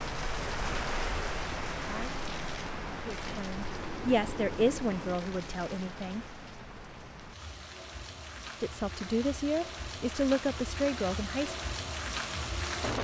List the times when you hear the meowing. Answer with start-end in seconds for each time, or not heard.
not heard.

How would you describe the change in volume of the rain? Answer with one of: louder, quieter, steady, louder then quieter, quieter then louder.
quieter then louder.